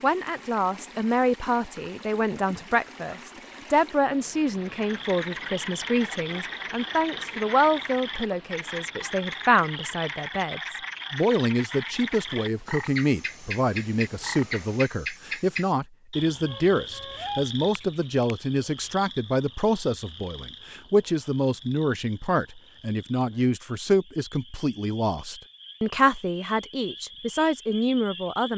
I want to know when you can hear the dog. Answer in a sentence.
You can't hear the dog here.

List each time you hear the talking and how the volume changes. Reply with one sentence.
The talking can be heard from 0.0 to 28.5 s, at a steady volume.